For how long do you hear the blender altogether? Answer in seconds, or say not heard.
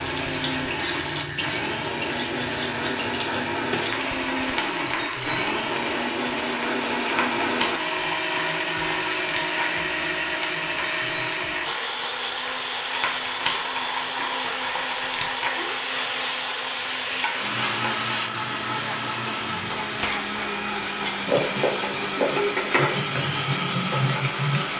25 s.